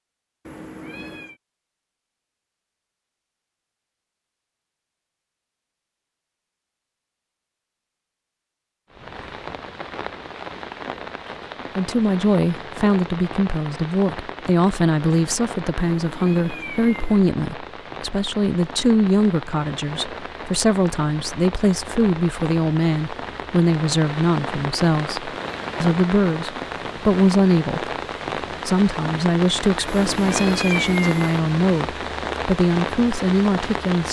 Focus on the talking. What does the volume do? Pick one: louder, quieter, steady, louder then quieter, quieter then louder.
steady.